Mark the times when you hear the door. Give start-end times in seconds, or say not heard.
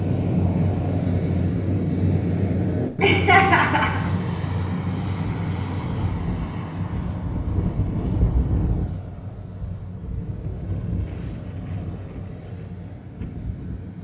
not heard.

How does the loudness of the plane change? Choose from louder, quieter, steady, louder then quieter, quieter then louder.
quieter.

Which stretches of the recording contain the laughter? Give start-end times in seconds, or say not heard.
3.0-4.0.